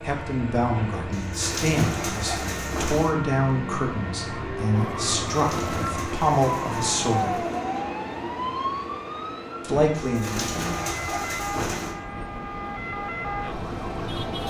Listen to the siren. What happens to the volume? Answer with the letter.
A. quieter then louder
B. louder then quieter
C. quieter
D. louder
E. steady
E.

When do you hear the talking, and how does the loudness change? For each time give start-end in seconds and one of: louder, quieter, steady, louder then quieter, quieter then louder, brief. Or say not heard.
0.0-7.4 steady
9.6-10.4 brief.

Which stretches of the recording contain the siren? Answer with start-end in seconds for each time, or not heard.
4.7-14.4.